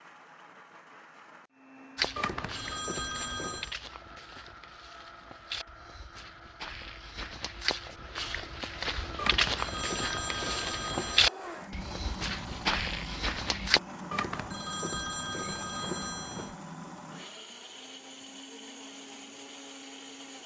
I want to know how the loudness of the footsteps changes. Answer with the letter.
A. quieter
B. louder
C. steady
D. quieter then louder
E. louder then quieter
B.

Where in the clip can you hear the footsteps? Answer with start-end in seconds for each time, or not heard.
1.9-13.8.